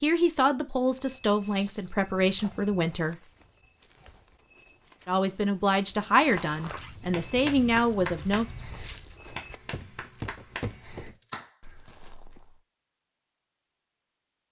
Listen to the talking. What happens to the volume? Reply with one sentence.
The loudness of the talking stays about the same.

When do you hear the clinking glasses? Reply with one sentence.
You can hear the clinking glasses from 1.6 to 2.1 s.